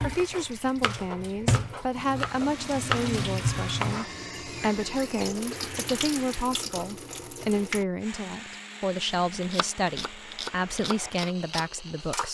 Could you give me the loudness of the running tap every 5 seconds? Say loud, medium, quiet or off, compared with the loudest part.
loud, loud, off.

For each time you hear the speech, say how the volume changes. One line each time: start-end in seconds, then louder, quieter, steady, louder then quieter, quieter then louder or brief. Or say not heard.
0.0-12.2 steady.